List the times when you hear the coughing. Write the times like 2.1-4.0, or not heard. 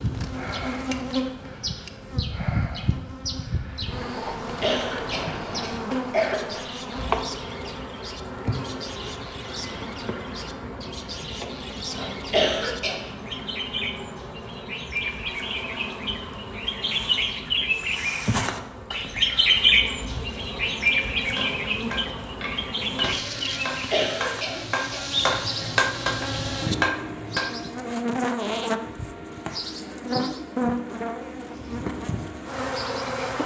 4.6-6.3, 12.3-13.0, 23.9-25.1.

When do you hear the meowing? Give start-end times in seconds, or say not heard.
not heard.